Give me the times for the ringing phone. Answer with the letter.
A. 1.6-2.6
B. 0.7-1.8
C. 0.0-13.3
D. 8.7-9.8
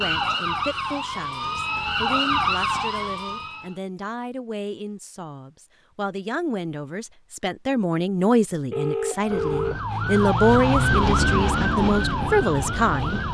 D.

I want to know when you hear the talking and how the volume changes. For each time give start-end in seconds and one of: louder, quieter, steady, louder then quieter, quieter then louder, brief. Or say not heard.
0.0-13.3 louder.